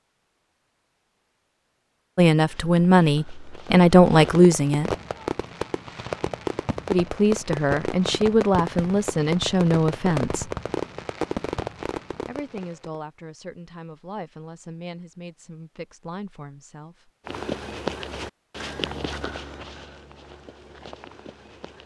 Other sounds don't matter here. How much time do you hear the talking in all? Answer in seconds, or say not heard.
11 s.